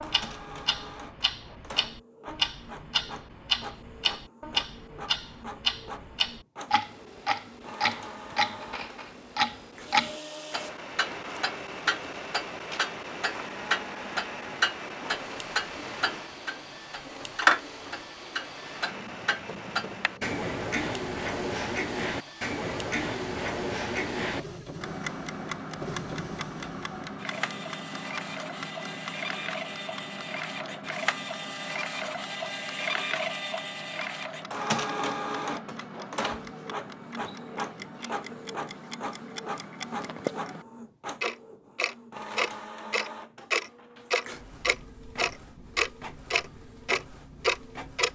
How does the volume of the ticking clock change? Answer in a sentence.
The loudness of the ticking clock goes down, then up.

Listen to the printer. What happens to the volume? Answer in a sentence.
The volume of the printer goes up, then down.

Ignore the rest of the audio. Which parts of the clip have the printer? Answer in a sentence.
The printer can be heard from 0.0 to 48.1 s.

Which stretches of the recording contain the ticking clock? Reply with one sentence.
The ticking clock can be heard from 0.0 to 48.1 s.